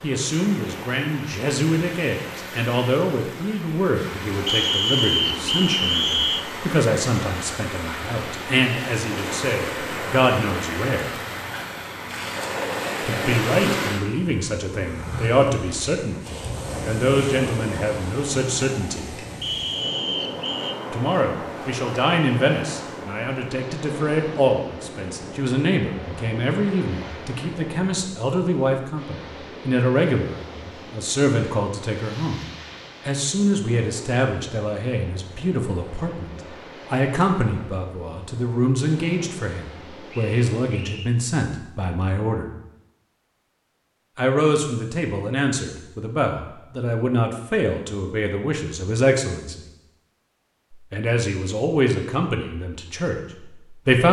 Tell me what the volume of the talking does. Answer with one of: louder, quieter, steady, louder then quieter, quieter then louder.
steady.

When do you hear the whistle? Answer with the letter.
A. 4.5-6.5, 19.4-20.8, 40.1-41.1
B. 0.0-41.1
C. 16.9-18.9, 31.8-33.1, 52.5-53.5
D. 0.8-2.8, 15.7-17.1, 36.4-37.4
A.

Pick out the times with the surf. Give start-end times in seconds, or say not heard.
0.0-41.1.